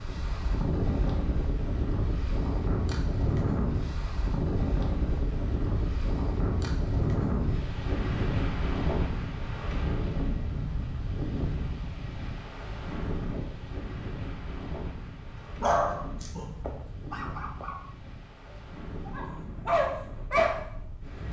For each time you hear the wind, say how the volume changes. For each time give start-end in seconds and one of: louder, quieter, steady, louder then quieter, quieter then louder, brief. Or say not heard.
0.0-21.2 quieter.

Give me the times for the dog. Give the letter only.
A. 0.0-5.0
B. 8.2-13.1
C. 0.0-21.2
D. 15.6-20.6
D.